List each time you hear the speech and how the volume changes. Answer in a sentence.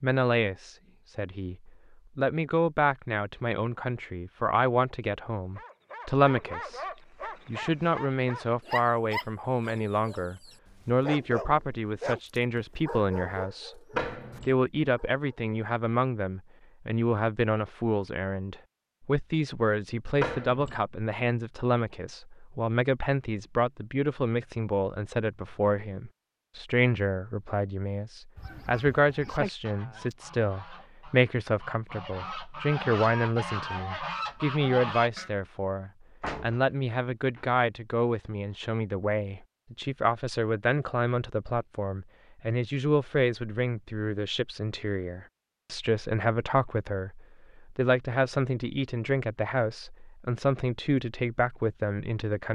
The speech can be heard from 0.0 to 6.8 s, getting louder; from 7.5 to 13.8 s, at a steady volume; and from 14.4 to 52.4 s, at a steady volume.